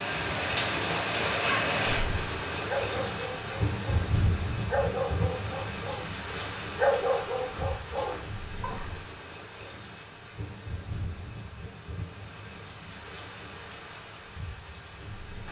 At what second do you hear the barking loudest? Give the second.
7 s.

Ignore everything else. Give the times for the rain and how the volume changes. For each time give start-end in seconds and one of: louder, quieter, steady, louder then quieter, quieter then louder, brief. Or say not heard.
0.0-15.4 quieter.